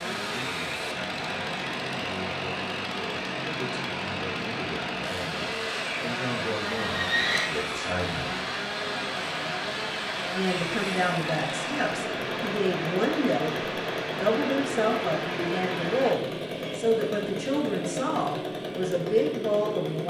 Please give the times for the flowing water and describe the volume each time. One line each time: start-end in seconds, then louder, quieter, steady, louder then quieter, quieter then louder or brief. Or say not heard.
0.0-16.1 steady.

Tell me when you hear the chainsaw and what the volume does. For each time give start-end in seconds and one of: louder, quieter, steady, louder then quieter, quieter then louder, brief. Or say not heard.
0.0-20.0 steady.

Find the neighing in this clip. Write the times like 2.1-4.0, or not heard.
6.7-7.5.